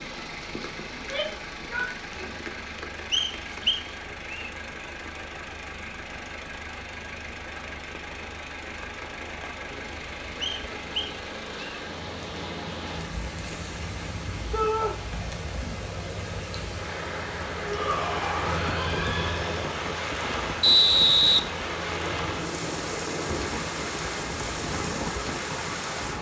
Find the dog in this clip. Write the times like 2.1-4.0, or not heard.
not heard.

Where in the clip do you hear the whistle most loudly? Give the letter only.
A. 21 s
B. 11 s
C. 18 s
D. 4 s
A.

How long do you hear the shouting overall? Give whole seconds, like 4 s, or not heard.
4 s.